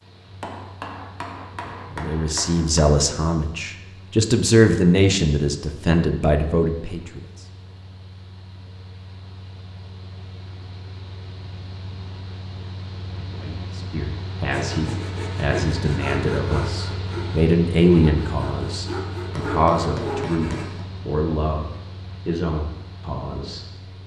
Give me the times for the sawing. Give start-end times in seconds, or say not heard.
14.5-20.6.